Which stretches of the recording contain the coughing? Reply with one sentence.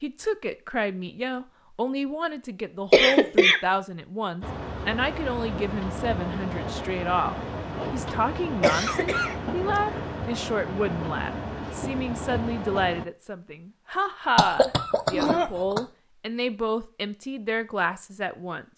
The coughing can be heard from 2.9 to 3.6 s, from 8.6 to 9.8 s and from 14.3 to 15.8 s.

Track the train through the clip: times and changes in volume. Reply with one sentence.
The train can be heard from 4.4 to 13.1 s, at a steady volume.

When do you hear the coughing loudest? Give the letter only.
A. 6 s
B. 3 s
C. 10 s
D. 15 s
B.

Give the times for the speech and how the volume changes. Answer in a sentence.
You can hear the speech from 0.0 to 18.6 s, at a steady volume.